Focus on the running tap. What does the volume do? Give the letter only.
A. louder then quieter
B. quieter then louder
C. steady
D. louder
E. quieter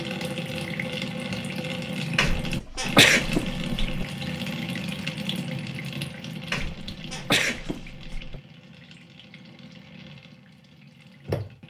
E.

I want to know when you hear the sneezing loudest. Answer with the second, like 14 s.
3 s.